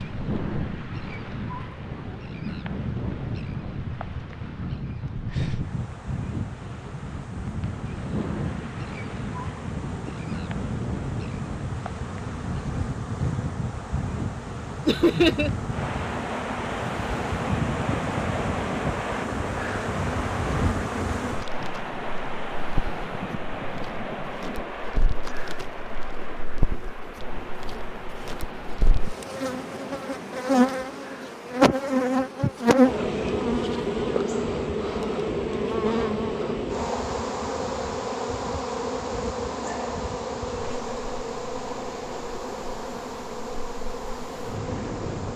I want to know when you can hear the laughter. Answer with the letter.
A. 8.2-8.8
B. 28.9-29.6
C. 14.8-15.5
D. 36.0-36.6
C.